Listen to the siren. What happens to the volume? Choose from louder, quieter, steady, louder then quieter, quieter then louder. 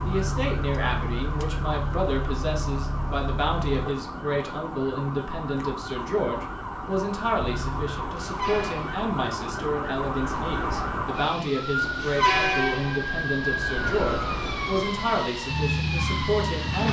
louder.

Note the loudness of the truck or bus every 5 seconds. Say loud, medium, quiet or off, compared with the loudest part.
loud, medium, loud, loud.